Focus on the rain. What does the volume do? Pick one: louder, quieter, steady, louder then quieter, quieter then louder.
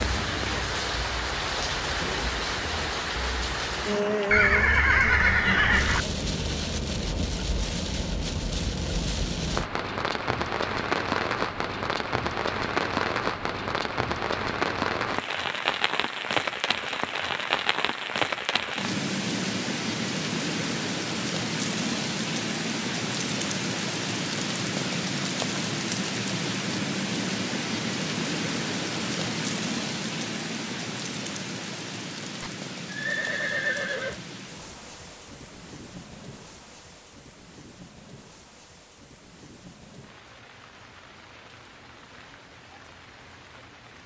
quieter.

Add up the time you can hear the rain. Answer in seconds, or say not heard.
44 s.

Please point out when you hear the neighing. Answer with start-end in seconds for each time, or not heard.
4.3-6.0, 32.4-34.2.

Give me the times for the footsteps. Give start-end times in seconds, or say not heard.
not heard.